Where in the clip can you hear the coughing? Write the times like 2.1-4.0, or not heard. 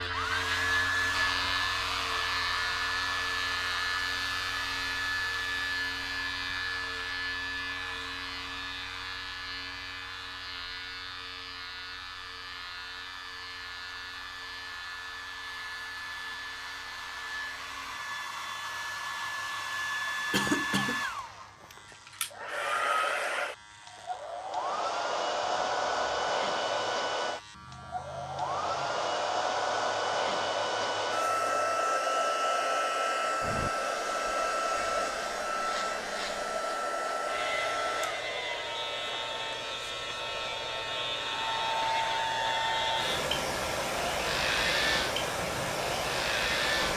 20.3-21.0.